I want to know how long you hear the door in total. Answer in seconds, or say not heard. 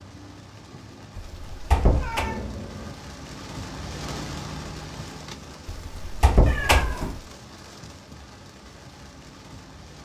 3 s.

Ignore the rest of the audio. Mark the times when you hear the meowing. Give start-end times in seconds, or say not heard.
2.0-3.0, 6.5-7.2.